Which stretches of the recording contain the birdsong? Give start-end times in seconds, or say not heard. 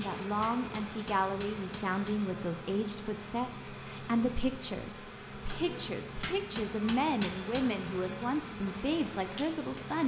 not heard.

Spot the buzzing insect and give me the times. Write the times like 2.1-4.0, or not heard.
0.0-10.0.